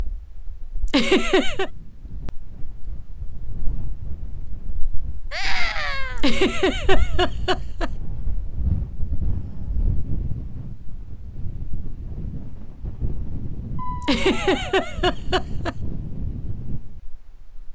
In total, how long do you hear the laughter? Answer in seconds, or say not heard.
4 s.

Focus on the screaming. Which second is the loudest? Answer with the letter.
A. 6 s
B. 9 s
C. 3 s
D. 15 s
A.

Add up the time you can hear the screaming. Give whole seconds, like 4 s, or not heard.
2 s.